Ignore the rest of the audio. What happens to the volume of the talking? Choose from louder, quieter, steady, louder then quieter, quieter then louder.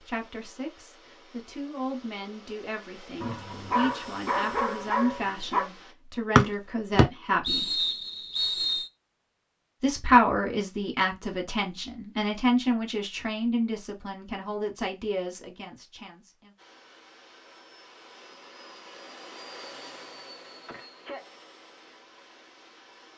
louder then quieter.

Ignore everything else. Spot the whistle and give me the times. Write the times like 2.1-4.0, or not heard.
6.3-8.8.